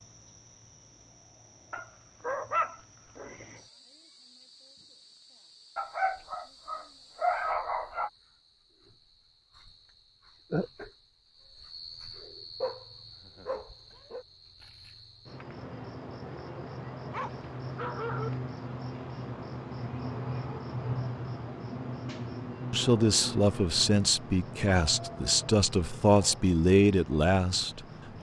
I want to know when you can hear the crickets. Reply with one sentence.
You can hear the crickets from 0.0 to 28.1 s.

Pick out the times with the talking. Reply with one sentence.
The talking can be heard from 22.7 to 28.1 s.